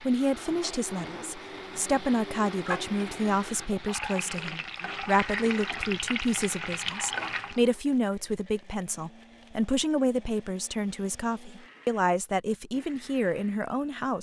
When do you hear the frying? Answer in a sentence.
The frying can be heard from 0.0 to 7.7 s.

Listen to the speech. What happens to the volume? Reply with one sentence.
The volume of the speech stays about the same.